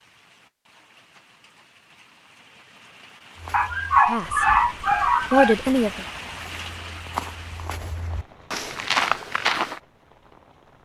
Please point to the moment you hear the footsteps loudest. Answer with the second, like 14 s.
9 s.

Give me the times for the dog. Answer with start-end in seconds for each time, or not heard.
3.5-5.5.